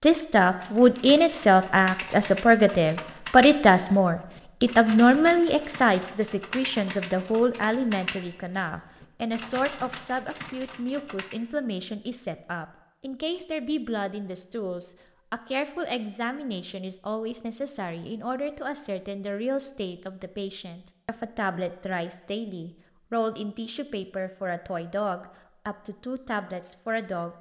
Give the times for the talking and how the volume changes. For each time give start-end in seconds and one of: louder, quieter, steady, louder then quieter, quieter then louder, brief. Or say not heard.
0.0-27.3 quieter.